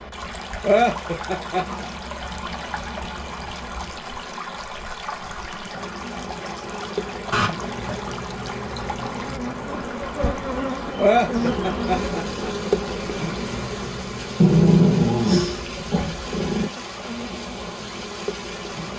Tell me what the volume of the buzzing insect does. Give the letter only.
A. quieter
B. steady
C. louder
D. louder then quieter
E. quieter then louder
D.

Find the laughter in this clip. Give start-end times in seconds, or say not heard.
0.6-1.9, 10.9-12.5.